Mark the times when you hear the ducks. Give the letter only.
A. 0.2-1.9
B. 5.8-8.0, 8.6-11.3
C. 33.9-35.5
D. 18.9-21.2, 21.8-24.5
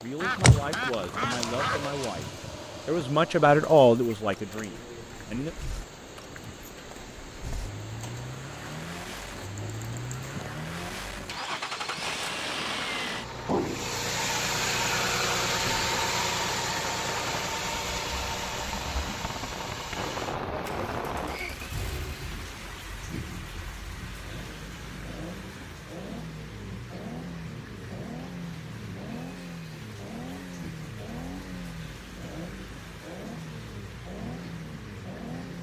A.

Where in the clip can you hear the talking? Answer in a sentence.
You can hear the talking from 0.0 to 2.2 s and from 2.9 to 5.5 s.